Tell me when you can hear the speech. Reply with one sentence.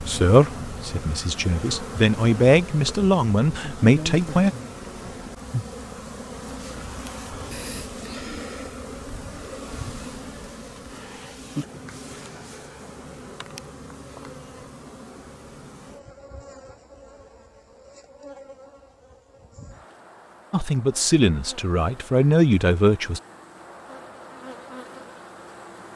You can hear the speech from 0.0 to 4.5 s and from 20.5 to 23.2 s.